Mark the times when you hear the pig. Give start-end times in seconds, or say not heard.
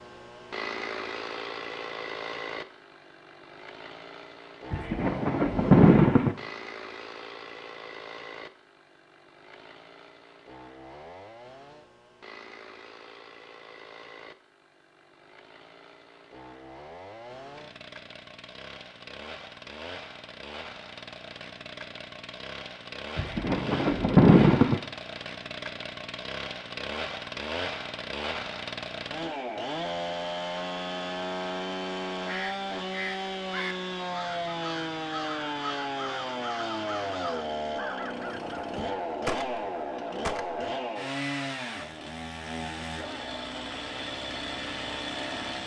not heard.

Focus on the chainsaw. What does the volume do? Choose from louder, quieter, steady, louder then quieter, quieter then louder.
quieter then louder.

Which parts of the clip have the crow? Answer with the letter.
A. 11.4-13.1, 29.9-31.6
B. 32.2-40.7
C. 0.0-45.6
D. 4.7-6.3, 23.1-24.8
B.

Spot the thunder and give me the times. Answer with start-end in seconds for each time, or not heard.
4.7-6.3, 23.1-24.8.